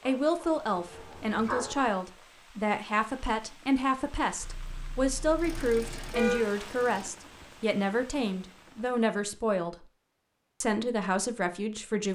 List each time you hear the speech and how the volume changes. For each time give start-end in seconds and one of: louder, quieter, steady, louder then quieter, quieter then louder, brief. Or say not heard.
0.1-9.8 steady
10.6-12.0 brief.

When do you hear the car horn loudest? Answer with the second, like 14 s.
6 s.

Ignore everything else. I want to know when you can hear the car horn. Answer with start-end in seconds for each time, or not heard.
4.4-6.4.